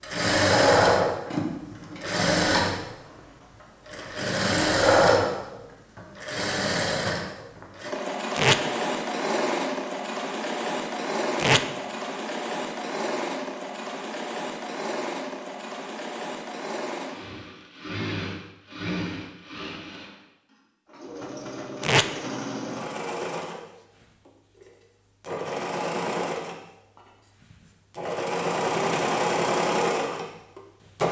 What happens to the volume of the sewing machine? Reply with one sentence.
The volume of the sewing machine goes down, then up.